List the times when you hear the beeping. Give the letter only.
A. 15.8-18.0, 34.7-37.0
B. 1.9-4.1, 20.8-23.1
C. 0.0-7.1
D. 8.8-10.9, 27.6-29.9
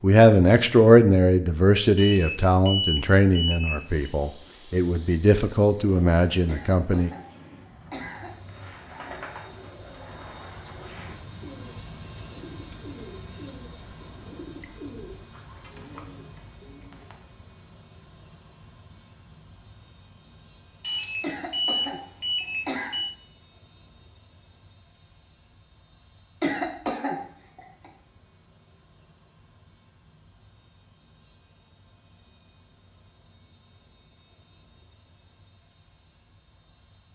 B.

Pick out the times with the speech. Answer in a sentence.
The speech can be heard from 0.0 to 7.1 s.